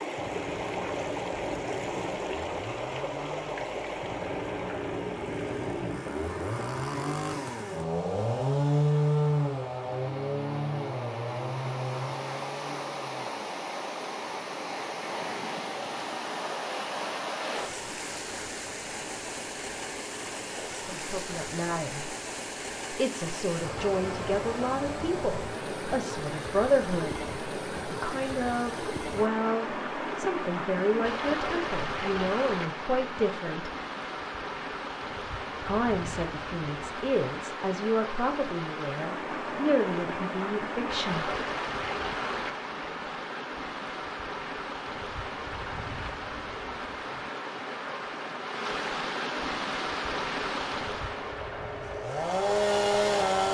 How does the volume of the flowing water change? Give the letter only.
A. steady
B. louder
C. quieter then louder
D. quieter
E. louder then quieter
A.